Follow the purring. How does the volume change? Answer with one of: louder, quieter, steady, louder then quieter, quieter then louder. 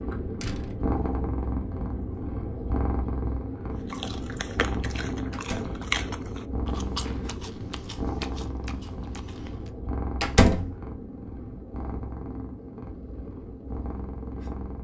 quieter.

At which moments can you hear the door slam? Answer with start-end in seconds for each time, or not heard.
0.4-0.8, 5.3-5.8, 10.2-10.8.